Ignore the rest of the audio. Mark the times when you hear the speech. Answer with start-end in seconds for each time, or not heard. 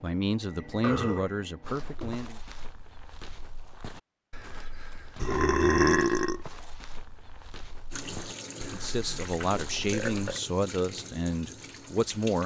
0.0-2.4, 8.7-12.4.